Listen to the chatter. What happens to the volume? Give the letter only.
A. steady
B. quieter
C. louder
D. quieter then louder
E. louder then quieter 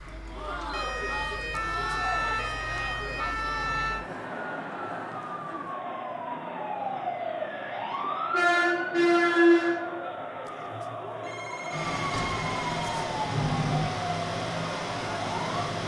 A.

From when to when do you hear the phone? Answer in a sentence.
The phone can be heard from 1.5 to 2.0 s and from 10.4 to 13.1 s.